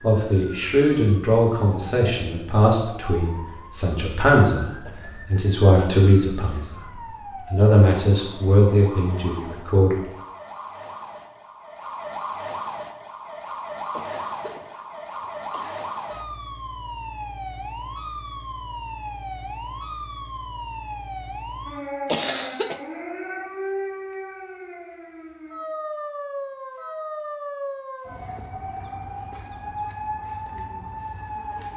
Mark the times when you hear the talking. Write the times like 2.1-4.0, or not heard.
0.0-10.0.